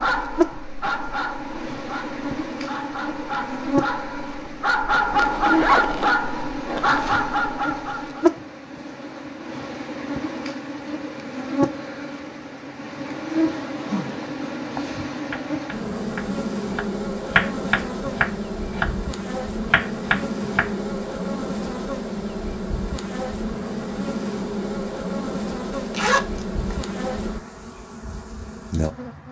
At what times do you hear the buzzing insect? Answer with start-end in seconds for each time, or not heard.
0.0-29.2.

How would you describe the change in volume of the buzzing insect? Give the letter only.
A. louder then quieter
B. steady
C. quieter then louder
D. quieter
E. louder
B.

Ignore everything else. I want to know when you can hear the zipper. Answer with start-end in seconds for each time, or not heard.
5.2-7.0, 13.7-14.3, 25.9-26.8.